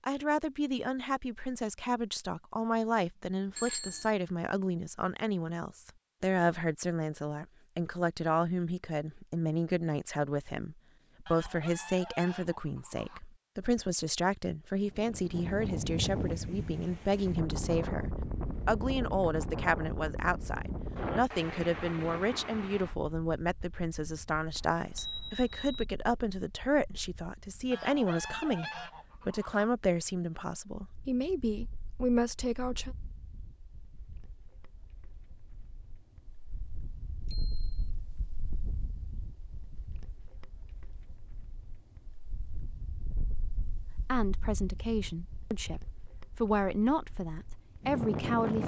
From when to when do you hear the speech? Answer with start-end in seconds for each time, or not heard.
0.0-33.0, 44.0-48.6.